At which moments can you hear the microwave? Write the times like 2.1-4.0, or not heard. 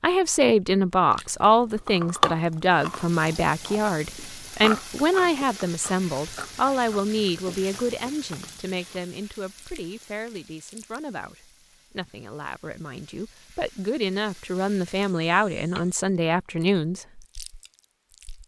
not heard.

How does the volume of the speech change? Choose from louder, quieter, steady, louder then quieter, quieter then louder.
quieter then louder.